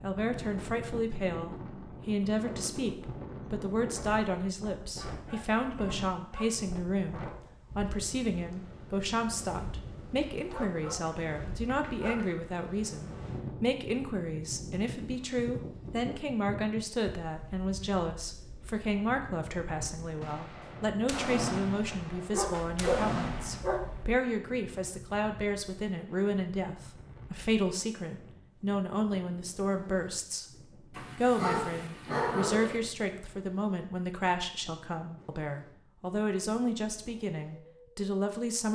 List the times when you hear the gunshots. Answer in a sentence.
You can hear the gunshots from 20.2 to 23.7 s.